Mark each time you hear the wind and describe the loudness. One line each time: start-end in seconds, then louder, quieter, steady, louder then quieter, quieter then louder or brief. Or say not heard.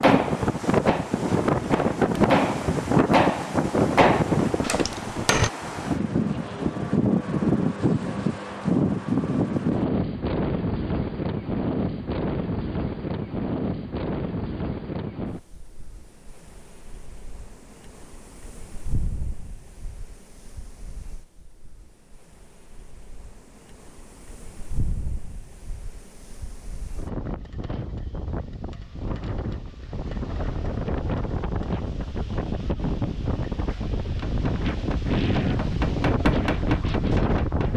0.0-37.7 quieter then louder.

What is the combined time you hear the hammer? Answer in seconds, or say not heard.
9 s.